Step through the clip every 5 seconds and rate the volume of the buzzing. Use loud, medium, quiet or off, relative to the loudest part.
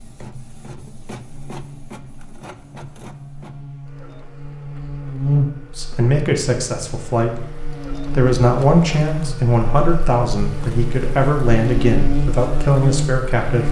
quiet, loud, loud.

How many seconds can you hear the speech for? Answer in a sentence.
The speech can be heard for 8 seconds in total.